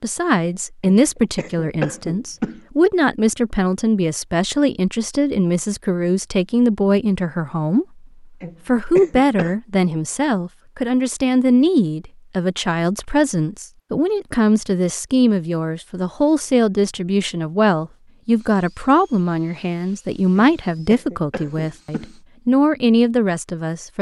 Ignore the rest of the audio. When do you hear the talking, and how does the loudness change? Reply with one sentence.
The talking can be heard from 0.0 to 7.8 s, at a steady volume; and from 8.7 to 23.9 s, at a steady volume.